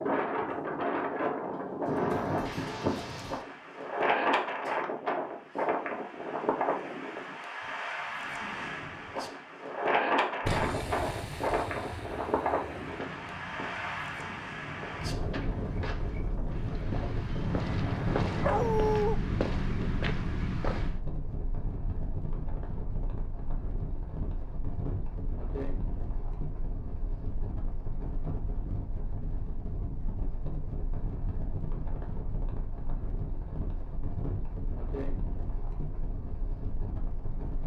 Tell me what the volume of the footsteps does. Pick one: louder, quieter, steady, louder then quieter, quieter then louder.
louder.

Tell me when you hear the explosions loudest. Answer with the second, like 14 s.
11 s.